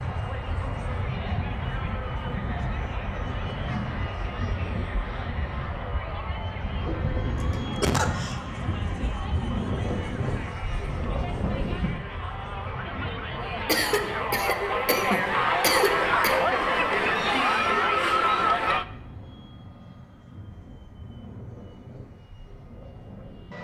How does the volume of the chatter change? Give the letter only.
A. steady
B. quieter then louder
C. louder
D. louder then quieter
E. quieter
C.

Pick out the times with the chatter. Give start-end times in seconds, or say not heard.
0.0-18.9.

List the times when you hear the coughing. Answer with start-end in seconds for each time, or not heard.
7.5-8.3, 13.7-16.4.